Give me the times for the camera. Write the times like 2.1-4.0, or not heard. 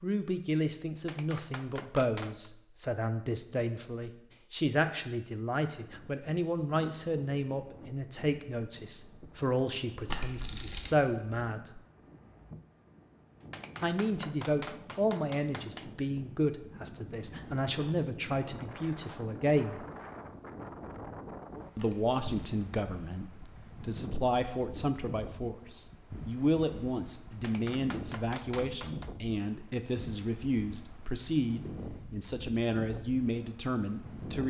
10.1-10.9, 21.8-22.4.